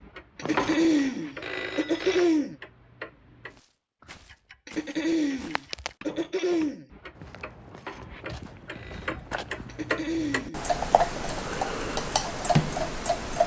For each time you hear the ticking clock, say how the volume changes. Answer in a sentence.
You can hear the ticking clock from 0.0 to 13.4 s, getting louder.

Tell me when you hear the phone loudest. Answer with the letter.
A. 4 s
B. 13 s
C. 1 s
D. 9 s
C.